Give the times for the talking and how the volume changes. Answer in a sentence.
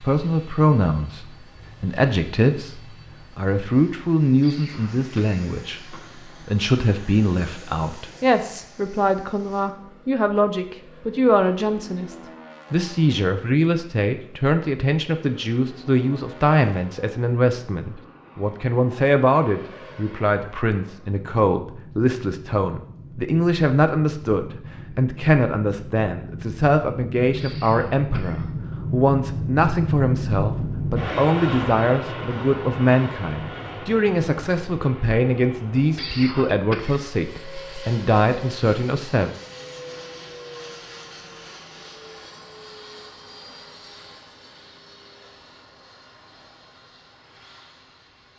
You can hear the talking from 0.0 to 39.3 s, at a steady volume.